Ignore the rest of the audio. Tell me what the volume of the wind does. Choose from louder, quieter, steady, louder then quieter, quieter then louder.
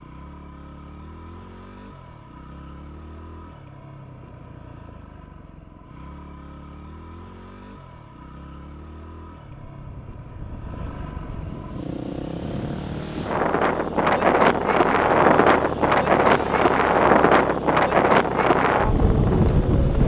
louder.